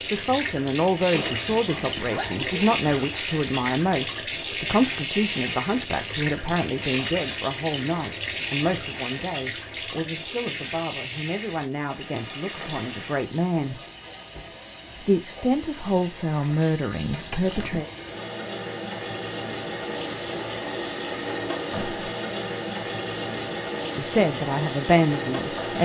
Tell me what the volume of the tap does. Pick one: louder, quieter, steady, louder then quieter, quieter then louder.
quieter then louder.